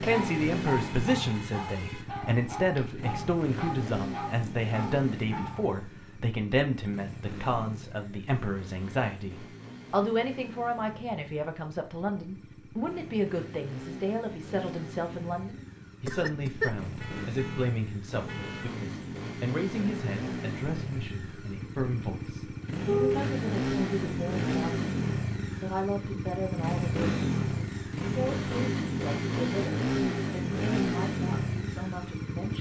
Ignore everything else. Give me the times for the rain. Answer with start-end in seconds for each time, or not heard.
not heard.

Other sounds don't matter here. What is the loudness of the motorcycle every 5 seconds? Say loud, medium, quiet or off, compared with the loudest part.
medium, quiet, quiet, medium, loud, loud, loud.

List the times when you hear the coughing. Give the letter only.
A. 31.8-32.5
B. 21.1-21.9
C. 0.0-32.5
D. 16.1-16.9
D.